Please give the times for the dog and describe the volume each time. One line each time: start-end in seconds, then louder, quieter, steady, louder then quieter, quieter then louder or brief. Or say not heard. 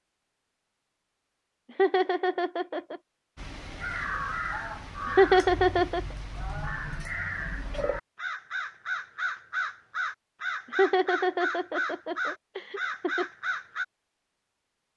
not heard.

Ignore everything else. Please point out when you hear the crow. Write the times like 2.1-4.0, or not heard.
3.4-13.8.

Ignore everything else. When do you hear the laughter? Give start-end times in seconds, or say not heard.
1.8-3.0, 5.2-6.0, 10.8-13.2.